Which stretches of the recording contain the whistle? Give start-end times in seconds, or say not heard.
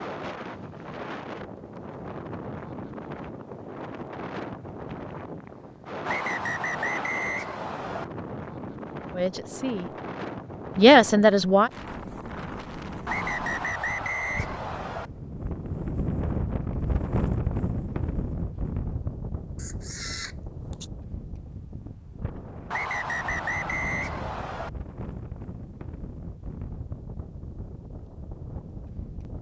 6.0-8.1, 13.1-15.1, 22.7-24.7.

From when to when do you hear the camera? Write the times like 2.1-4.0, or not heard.
19.6-20.9.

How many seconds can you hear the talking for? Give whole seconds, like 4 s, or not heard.
2 s.